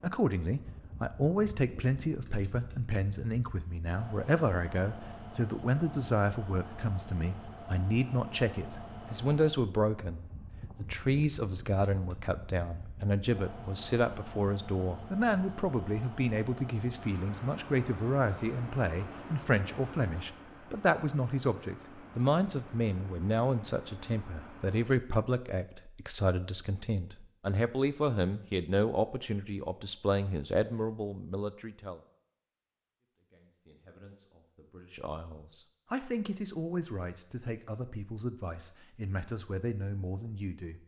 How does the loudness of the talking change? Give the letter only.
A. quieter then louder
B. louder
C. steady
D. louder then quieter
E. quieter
E.